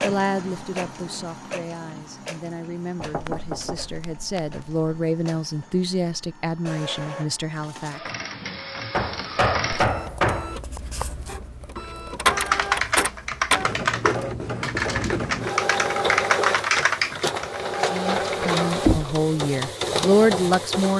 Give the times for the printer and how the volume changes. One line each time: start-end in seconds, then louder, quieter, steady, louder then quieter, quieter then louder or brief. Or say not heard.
0.0-20.9 louder.